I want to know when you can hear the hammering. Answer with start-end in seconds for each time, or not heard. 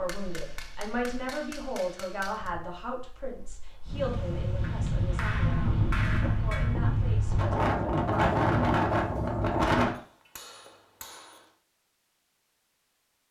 0.1-2.5, 4.6-6.8, 9.9-11.5.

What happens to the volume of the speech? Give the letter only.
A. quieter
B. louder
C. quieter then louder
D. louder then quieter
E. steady
A.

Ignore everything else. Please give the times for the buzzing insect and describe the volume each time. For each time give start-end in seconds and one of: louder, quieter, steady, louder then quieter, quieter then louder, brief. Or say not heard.
not heard.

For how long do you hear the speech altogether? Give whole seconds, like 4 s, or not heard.
8 s.